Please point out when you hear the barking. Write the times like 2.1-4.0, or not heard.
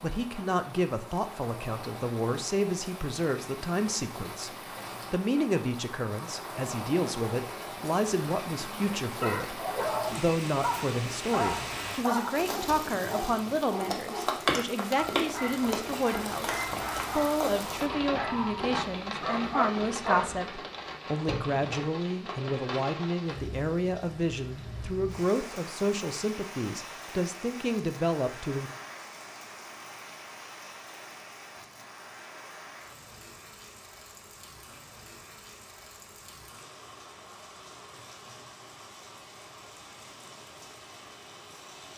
9.2-20.3.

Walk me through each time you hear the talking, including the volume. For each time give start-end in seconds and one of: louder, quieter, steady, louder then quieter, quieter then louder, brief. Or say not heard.
0.0-28.7 steady.